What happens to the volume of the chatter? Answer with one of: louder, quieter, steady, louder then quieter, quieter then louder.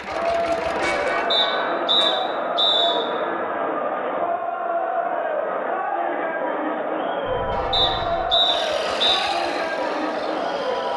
steady.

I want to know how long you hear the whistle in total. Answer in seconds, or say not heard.
3 s.